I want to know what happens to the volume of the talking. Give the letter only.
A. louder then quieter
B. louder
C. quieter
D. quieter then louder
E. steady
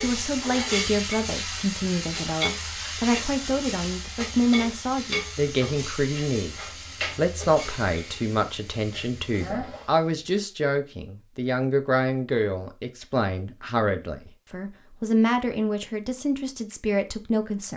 E.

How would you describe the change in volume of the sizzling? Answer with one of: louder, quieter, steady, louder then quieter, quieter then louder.
quieter.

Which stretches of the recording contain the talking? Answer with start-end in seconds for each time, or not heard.
0.0-17.7.